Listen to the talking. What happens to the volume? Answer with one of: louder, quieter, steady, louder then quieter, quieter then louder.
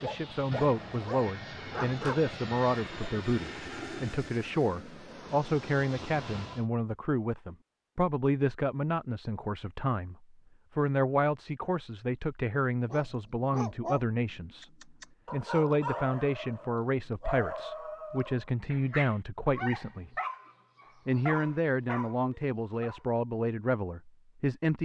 steady.